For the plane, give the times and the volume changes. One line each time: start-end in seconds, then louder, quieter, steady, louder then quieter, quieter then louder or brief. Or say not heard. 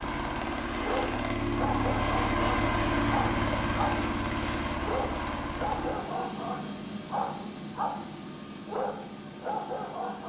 0.0-10.2 quieter.